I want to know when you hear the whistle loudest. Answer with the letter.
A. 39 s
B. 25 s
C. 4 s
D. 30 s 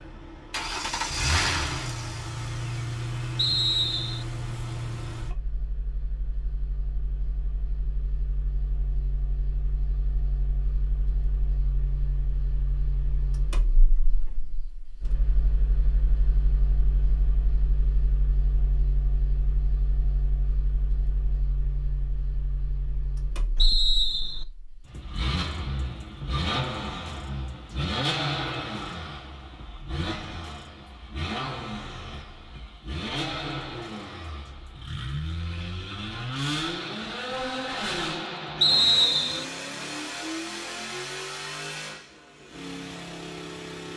A.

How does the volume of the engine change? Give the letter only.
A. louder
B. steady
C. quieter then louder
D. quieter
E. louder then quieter
C.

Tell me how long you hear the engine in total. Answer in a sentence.
The engine can be heard for 44 seconds in total.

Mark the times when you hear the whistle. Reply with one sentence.
The whistle can be heard from 3.4 to 4.2 s, from 23.6 to 24.4 s and from 38.6 to 39.5 s.